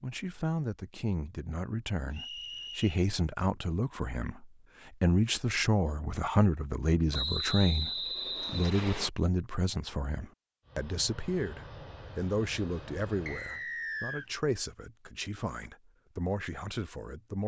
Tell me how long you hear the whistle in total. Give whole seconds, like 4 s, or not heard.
4 s.